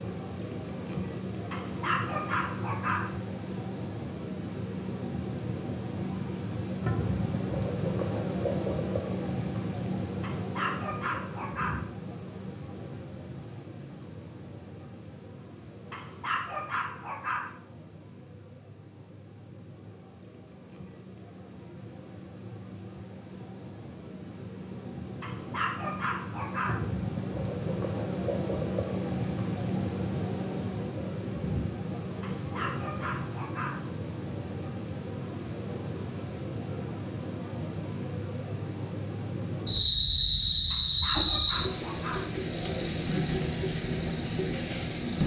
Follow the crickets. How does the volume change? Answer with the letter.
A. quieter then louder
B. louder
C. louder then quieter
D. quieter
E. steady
A.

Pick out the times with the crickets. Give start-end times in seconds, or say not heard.
0.0-45.2.